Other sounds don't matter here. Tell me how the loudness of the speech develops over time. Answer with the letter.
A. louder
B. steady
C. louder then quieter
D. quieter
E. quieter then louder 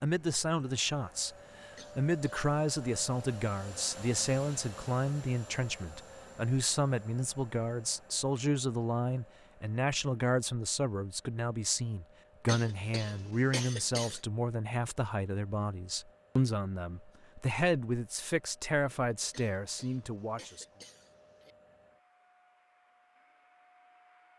B.